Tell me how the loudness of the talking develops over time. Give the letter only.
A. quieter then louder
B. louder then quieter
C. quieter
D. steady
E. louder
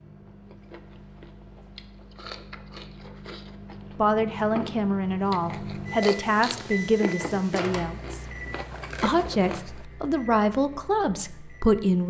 D.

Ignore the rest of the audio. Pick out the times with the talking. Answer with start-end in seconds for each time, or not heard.
4.0-8.2, 9.0-12.0.